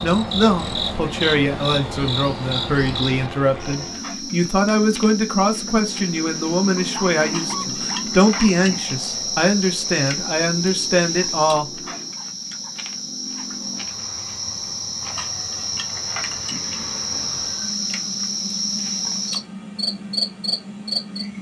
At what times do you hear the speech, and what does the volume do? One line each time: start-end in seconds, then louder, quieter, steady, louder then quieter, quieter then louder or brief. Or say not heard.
0.0-11.7 steady.